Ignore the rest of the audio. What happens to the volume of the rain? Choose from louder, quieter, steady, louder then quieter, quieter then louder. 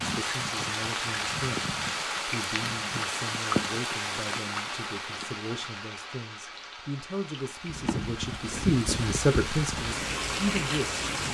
quieter then louder.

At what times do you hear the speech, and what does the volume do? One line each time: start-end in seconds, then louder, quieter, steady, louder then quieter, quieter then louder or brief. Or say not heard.
0.0-11.3 louder.